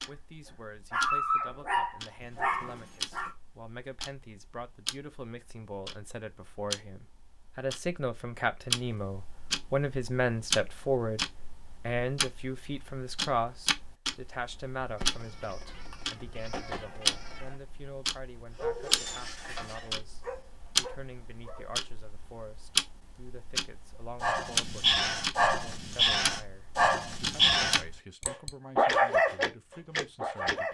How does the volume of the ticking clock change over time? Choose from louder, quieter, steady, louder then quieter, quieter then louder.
louder.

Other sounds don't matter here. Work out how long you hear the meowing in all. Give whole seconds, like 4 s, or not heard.
3 s.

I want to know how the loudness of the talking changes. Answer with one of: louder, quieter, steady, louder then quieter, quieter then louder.
louder then quieter.